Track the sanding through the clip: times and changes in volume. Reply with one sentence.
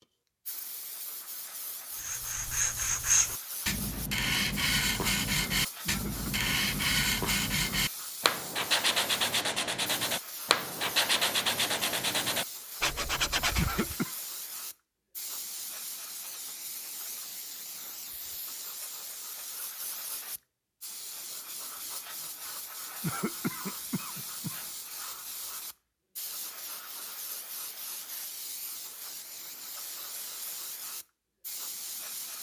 The sanding can be heard from 1.9 to 13.9 s, at a steady volume.